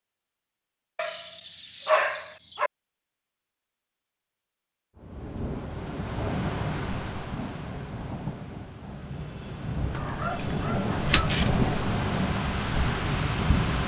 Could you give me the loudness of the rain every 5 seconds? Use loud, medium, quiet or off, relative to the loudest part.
off, medium, loud.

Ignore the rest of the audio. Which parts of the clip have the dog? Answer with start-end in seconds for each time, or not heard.
0.9-2.7, 9.9-11.6.